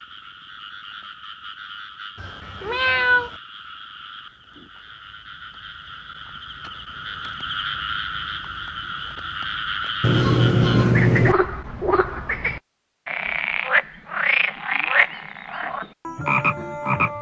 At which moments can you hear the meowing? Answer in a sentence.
You can hear the meowing from 2.1 to 3.4 s and from 10.0 to 11.3 s.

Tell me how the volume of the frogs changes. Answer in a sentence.
The loudness of the frogs goes up.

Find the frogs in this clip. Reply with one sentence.
The frogs can be heard from 0.0 to 17.1 s.